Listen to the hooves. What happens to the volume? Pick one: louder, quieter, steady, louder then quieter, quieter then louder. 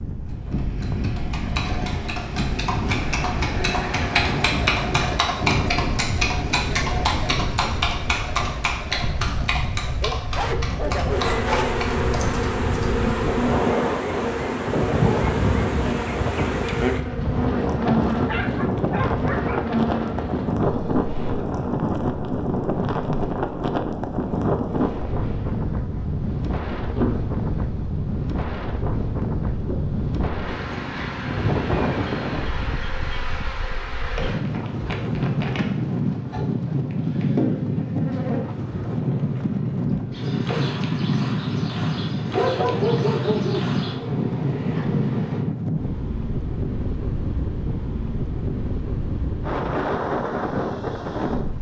louder then quieter.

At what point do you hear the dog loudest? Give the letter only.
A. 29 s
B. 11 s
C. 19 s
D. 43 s
D.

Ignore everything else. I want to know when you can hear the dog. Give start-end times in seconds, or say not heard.
10.0-11.8, 18.1-19.6, 42.2-43.6.